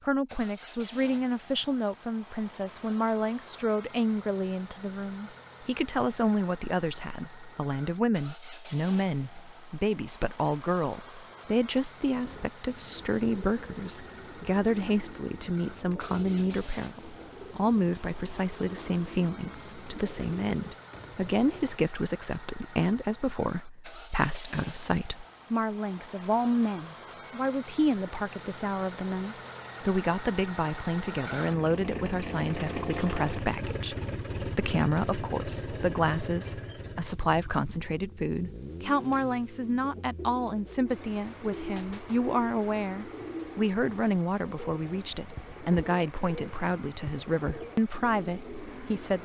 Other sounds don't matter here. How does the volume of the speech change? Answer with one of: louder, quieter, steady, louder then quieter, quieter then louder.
steady.